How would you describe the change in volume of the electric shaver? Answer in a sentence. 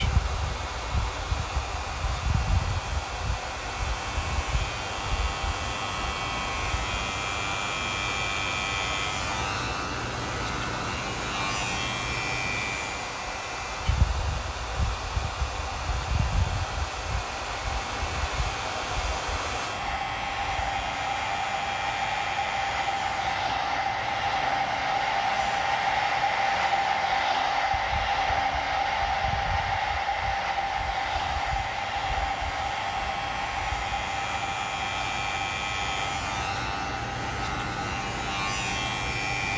The loudness of the electric shaver goes down, then up.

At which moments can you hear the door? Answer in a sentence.
The door can't be heard in this clip.